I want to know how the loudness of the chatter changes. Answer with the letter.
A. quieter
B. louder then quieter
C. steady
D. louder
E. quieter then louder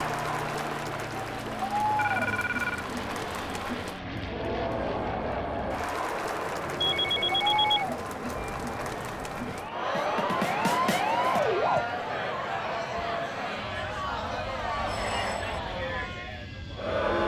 C.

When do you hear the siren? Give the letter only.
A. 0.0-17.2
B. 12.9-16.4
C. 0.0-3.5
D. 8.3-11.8
D.